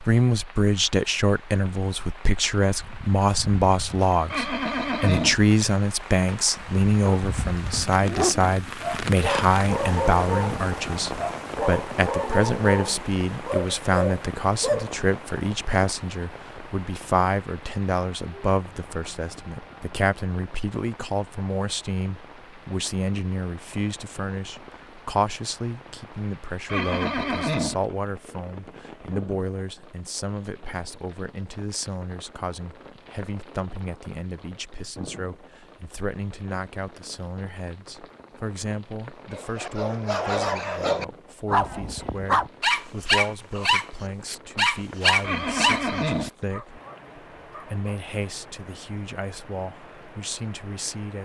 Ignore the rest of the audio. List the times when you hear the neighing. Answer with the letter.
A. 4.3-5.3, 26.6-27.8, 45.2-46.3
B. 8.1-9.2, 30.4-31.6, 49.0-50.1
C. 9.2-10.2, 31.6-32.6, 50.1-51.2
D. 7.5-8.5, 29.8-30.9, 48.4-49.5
A.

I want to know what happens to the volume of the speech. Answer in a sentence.
The volume of the speech goes down.